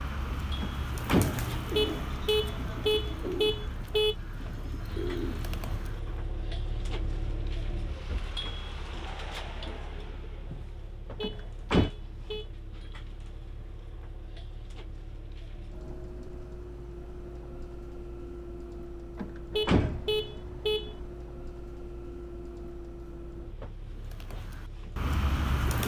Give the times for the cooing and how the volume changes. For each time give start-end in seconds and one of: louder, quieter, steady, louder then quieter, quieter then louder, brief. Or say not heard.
0.0-6.2 quieter then louder
23.9-25.8 brief.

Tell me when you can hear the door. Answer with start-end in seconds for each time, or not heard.
0.6-1.4, 11.2-11.9, 19.1-20.1.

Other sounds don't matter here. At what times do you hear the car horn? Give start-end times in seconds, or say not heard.
1.7-4.2, 11.2-12.5, 19.5-21.1.